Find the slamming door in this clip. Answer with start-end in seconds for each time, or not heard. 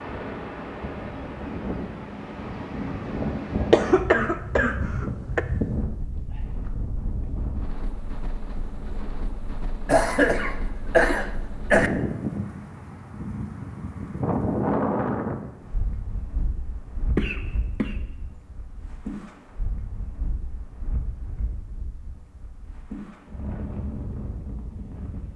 not heard.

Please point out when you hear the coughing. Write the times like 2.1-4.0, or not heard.
3.7-5.4, 9.8-11.9, 17.1-17.9.